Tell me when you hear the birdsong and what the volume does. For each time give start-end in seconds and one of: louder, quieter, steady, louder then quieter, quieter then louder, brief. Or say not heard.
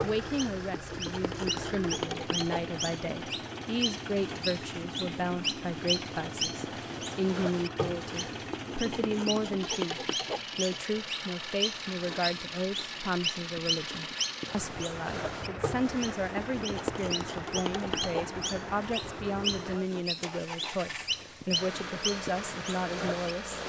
0.0-23.6 steady.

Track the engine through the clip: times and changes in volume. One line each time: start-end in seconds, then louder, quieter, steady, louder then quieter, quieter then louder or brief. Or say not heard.
0.0-23.6 steady.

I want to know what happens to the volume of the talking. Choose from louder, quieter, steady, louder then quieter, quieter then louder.
steady.